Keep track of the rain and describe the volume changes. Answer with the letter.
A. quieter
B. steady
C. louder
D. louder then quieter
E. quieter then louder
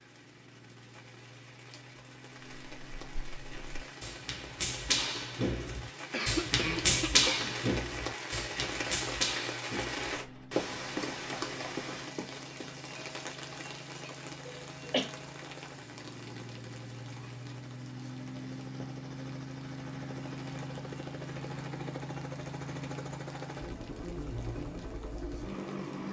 D.